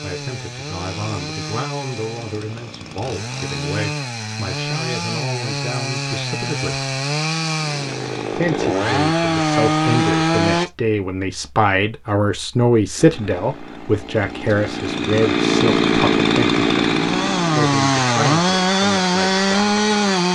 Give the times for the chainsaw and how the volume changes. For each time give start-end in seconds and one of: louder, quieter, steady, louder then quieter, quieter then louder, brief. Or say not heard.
0.0-10.7 louder
12.9-20.3 louder.